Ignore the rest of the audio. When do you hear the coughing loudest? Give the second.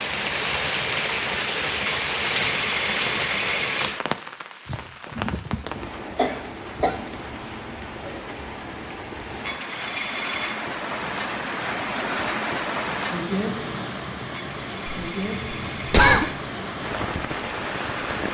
16 s.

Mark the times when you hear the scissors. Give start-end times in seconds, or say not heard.
not heard.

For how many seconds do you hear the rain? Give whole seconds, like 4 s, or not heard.
18 s.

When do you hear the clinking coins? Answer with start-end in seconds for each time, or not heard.
2.0-3.9, 9.4-10.7, 14.3-16.4.